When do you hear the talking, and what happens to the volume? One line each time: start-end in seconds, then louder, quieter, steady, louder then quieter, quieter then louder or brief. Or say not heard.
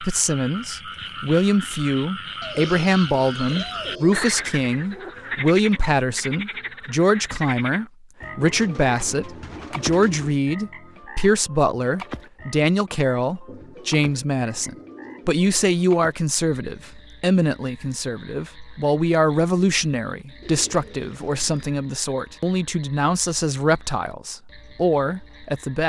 0.0-25.8 steady.